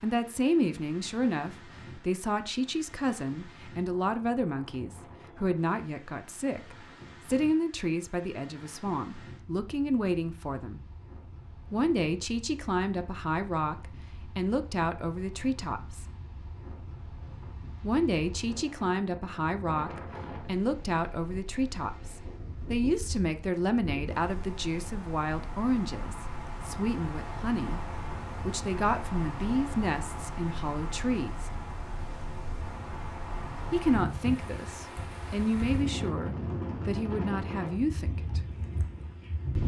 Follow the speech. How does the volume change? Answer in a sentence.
The loudness of the speech stays about the same.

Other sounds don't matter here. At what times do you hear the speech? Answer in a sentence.
You can hear the speech from 0.0 to 10.8 s, from 11.7 to 16.1 s, from 17.8 to 31.5 s and from 33.7 to 38.4 s.